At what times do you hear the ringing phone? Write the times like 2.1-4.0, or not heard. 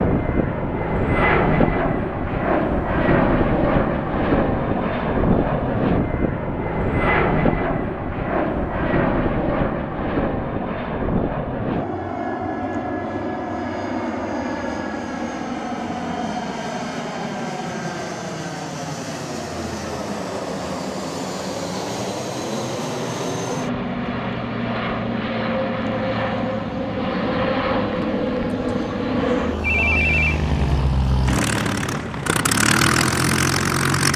29.6-30.4.